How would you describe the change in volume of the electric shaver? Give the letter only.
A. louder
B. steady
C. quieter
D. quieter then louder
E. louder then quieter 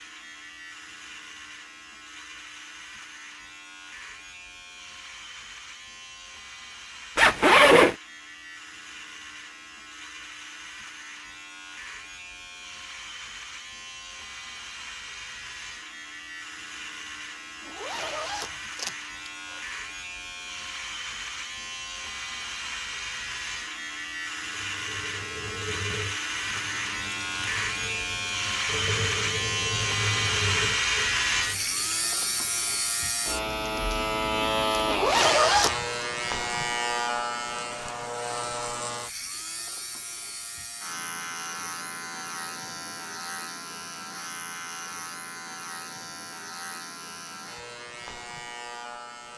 E.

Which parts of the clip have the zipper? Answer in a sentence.
The zipper can be heard from 7.2 to 8.0 s, from 17.6 to 19.3 s and from 34.9 to 35.8 s.